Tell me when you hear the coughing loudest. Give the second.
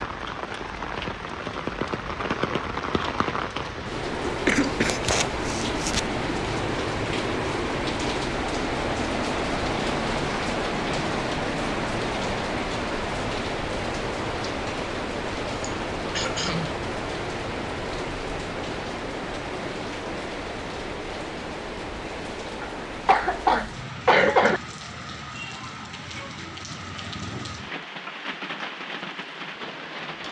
24 s.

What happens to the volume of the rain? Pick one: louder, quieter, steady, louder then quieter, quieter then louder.
quieter.